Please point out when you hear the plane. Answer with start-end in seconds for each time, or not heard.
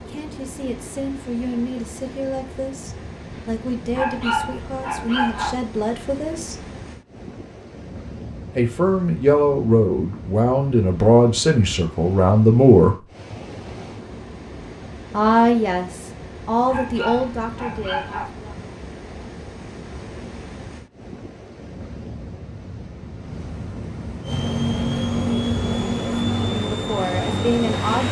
24.2-28.0.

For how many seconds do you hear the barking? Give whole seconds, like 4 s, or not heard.
3 s.